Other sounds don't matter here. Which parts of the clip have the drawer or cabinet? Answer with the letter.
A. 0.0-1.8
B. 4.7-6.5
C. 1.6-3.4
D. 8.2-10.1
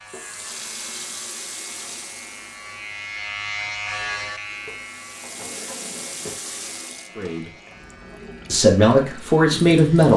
B.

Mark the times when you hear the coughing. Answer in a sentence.
The coughing can't be heard in this clip.